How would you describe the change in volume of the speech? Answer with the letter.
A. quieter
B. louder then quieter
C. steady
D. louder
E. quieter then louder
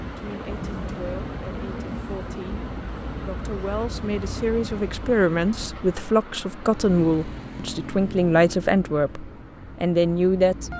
D.